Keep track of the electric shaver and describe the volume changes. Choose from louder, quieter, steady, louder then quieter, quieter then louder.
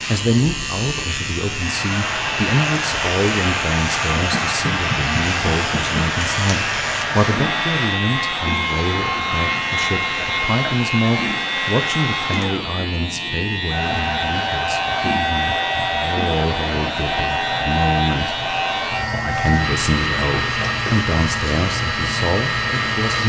steady.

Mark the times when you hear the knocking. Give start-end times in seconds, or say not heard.
4.2-6.2, 10.2-10.8, 20.3-21.1.